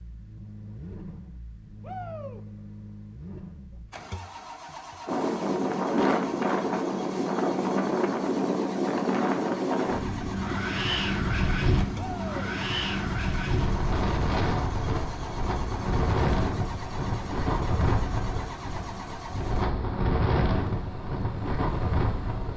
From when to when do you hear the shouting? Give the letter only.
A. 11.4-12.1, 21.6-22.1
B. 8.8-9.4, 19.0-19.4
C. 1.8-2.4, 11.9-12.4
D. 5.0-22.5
C.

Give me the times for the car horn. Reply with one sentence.
You can't hear the car horn here.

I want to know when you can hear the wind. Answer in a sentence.
The wind can be heard from 5.0 to 22.5 s.